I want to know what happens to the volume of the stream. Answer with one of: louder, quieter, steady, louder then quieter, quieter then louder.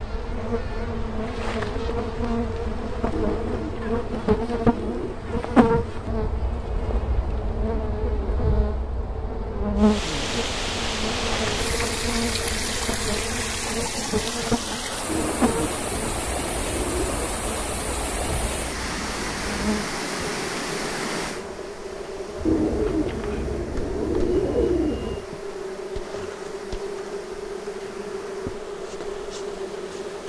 quieter.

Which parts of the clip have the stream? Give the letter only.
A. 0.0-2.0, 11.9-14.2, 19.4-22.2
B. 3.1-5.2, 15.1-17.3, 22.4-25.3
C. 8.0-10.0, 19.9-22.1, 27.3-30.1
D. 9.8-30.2
D.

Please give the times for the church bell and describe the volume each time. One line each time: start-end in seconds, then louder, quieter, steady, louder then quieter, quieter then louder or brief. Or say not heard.
not heard.